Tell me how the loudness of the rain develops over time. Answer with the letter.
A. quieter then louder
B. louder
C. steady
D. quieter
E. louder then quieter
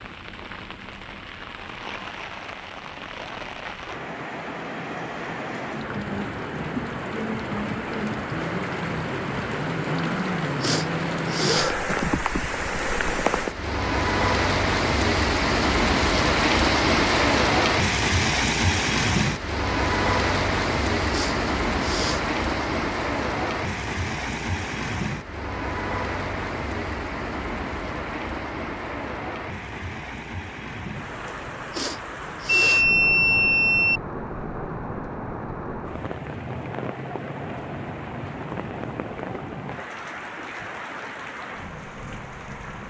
E.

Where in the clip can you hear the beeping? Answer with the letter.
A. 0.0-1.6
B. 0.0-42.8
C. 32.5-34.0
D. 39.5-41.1
C.